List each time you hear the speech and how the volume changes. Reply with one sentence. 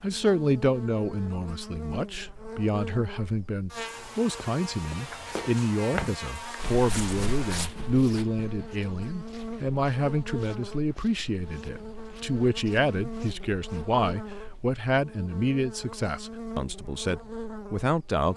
You can hear the speech from 0.0 to 18.3 s, at a steady volume.